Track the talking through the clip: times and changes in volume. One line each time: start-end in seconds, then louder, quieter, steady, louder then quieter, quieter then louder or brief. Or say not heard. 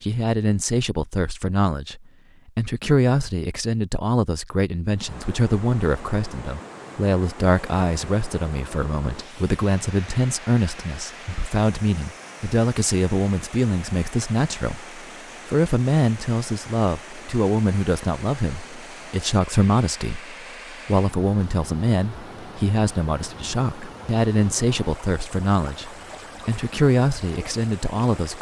0.0-28.3 steady.